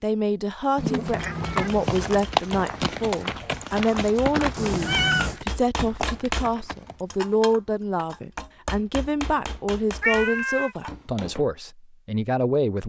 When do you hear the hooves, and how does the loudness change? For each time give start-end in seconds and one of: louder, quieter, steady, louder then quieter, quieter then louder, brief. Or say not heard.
0.9-7.2 quieter.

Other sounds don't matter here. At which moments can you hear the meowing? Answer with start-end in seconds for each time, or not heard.
0.8-2.2, 4.5-5.4, 10.0-10.7.